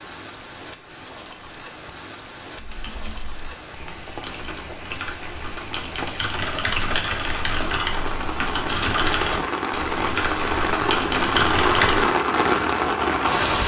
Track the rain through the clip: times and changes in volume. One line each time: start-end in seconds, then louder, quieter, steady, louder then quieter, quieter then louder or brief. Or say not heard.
0.0-13.6 louder.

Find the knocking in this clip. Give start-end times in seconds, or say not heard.
not heard.